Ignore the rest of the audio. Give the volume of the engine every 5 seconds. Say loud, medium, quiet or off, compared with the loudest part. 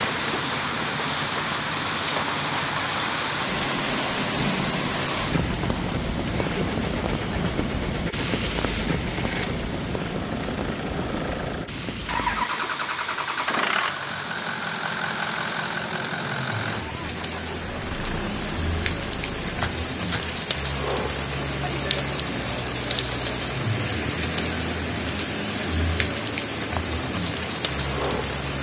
medium, medium, loud, loud, medium, medium.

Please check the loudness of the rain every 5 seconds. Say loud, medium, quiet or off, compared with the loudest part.
loud, loud, medium, medium, loud, loud.